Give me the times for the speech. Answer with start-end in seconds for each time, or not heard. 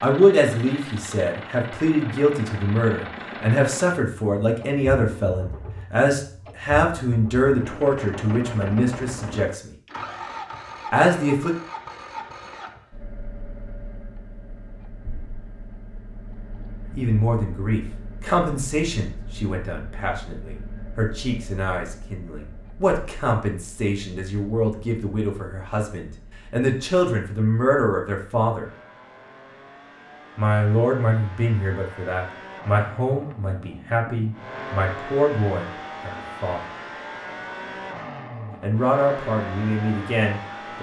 0.0-9.7, 10.9-11.5, 16.9-28.7, 30.4-36.6, 38.6-40.7.